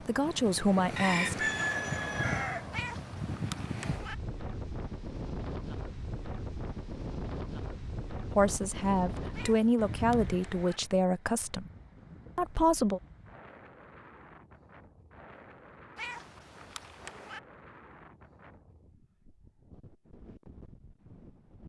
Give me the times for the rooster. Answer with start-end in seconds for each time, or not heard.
0.9-2.6.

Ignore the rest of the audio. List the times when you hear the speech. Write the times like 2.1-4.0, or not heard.
0.0-1.5, 8.3-11.7, 12.3-13.0.